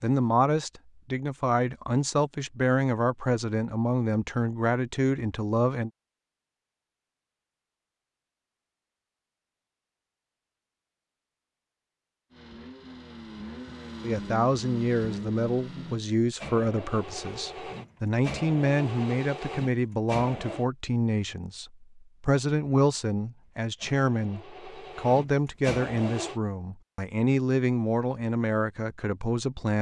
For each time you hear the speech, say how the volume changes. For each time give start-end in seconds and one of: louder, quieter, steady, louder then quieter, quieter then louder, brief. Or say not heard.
0.0-5.9 steady
14.0-29.7 steady.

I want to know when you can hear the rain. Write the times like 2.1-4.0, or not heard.
not heard.